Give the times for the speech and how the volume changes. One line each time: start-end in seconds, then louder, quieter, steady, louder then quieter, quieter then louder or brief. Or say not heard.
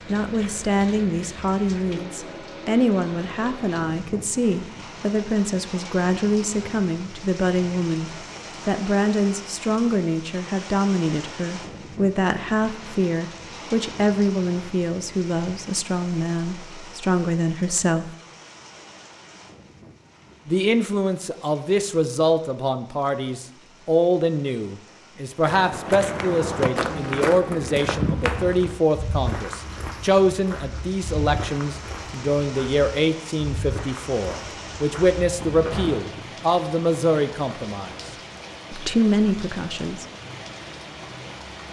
0.1-18.1 steady
20.4-38.1 steady
38.7-40.0 brief.